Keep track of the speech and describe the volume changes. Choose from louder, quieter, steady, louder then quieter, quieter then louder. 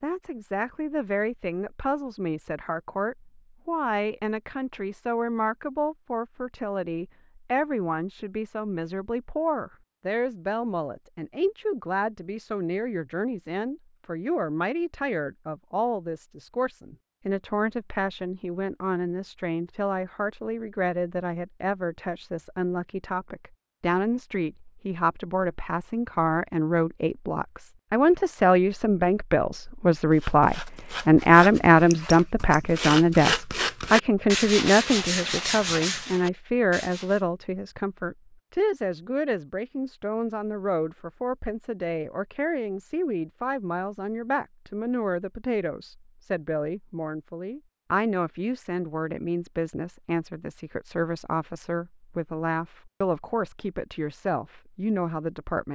louder then quieter.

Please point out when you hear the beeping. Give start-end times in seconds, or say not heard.
not heard.